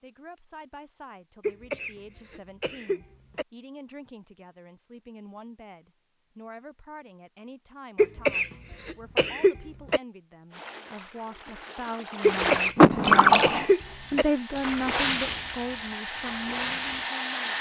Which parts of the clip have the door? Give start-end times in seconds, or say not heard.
12.8-13.7.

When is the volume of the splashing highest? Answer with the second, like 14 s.
13 s.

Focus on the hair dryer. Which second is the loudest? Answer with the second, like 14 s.
17 s.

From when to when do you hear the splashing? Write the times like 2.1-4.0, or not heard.
10.5-17.1.